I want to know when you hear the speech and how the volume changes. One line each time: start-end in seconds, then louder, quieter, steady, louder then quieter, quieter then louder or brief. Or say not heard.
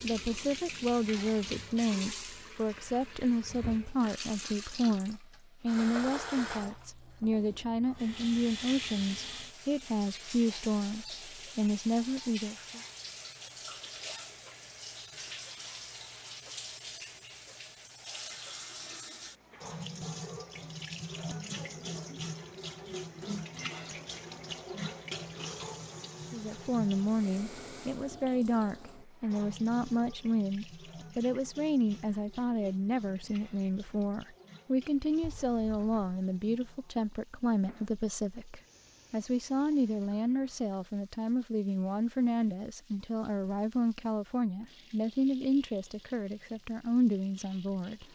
0.0-12.8 steady
26.3-48.0 steady.